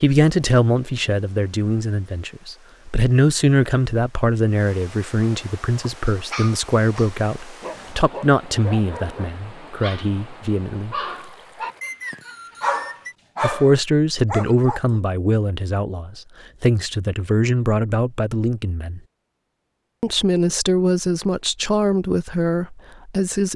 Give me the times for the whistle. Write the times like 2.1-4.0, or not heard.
11.8-13.2.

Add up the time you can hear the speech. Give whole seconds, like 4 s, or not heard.
20 s.